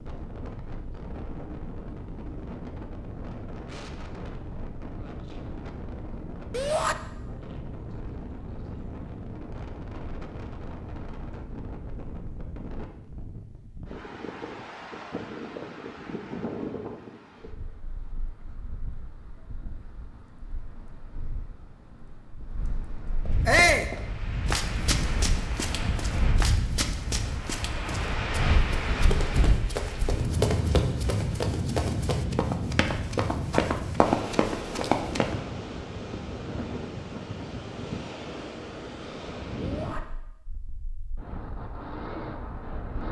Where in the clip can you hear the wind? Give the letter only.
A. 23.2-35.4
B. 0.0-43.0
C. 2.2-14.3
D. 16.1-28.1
B.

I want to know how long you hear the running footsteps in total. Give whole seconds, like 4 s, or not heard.
12 s.